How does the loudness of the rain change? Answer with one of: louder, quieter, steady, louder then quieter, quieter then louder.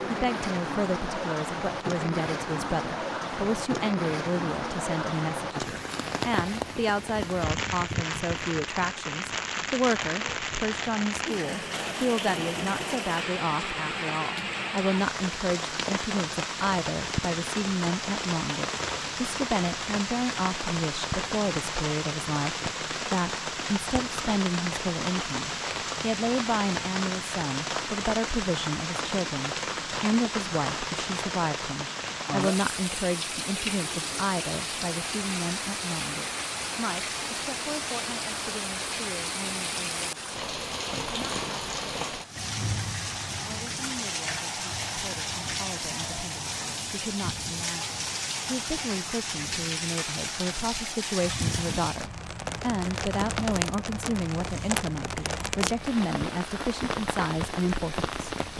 steady.